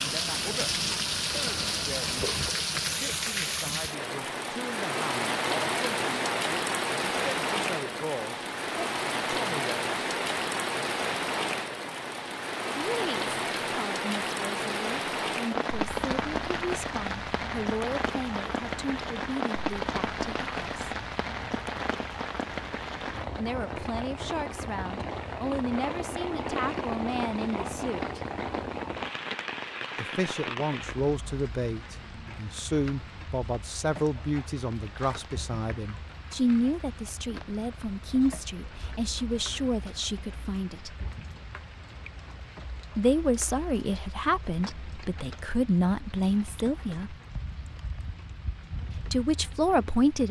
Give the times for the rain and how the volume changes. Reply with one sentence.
You can hear the rain from 0.0 to 50.2 s, getting quieter.